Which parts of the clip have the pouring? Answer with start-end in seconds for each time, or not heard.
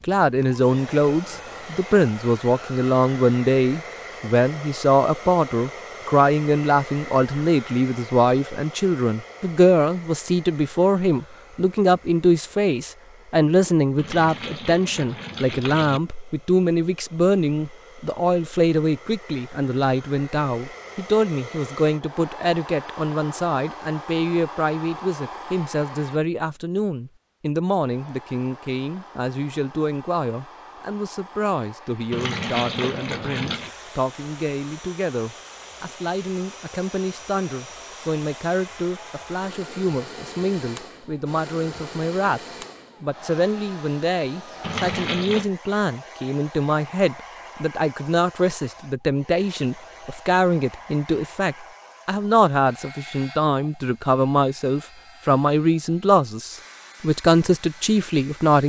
13.9-16.0, 32.1-33.7, 44.6-45.5.